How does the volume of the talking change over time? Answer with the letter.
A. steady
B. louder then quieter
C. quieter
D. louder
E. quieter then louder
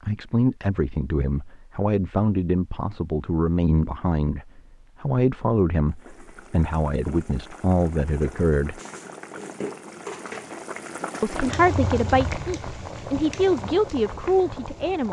A.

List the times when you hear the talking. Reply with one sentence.
The talking can be heard from 0.0 to 8.8 s and from 11.2 to 15.0 s.